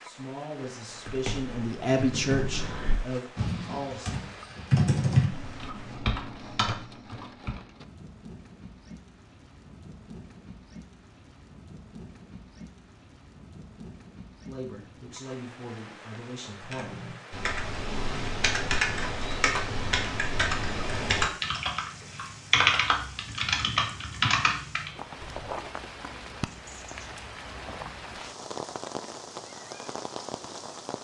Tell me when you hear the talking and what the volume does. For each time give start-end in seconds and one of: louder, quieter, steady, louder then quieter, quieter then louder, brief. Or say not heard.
0.0-4.2 louder then quieter
14.4-17.0 brief.